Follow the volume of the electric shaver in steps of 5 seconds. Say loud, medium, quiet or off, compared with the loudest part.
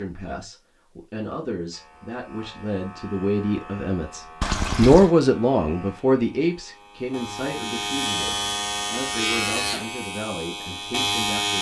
quiet, loud, loud.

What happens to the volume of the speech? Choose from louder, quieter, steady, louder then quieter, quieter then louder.
louder then quieter.